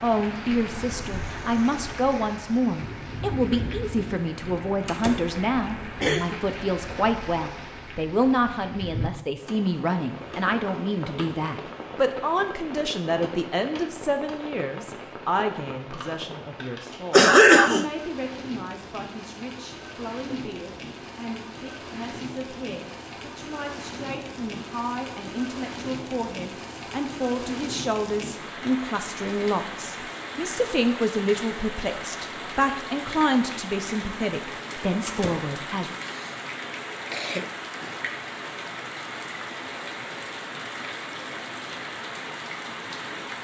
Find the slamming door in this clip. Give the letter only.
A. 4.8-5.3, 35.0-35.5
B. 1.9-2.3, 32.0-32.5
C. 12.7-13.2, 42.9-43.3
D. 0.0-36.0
A.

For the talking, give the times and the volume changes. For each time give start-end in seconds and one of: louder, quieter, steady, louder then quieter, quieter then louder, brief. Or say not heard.
0.0-36.0 quieter then louder.